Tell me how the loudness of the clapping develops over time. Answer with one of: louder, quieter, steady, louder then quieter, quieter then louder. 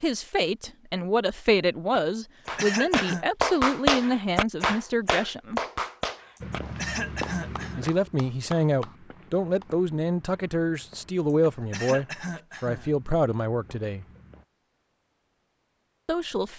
quieter.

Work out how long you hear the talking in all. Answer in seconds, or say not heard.
12 s.